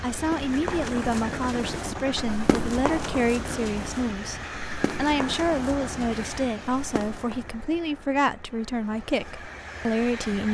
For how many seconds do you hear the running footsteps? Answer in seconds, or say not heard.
7 s.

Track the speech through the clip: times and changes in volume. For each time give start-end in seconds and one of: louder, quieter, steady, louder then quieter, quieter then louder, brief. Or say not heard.
0.0-10.4 steady.